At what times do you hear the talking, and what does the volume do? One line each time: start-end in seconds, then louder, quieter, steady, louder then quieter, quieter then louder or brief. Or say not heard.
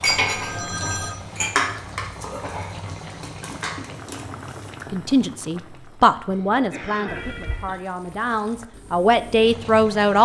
4.9-10.2 quieter then louder.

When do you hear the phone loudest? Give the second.
1 s.